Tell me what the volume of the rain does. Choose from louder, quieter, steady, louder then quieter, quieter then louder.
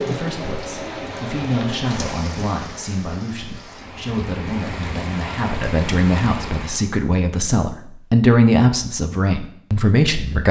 quieter then louder.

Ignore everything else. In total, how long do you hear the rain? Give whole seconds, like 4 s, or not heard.
7 s.